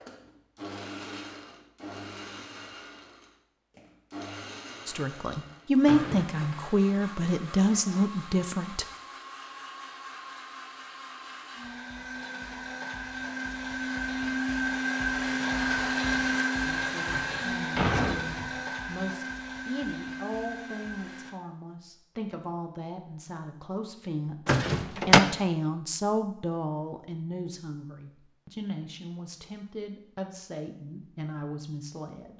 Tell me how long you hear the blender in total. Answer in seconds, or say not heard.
21 s.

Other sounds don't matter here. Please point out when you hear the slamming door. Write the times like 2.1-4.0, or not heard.
5.8-6.5, 17.1-18.6, 24.4-25.2.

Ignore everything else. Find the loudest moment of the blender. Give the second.
16 s.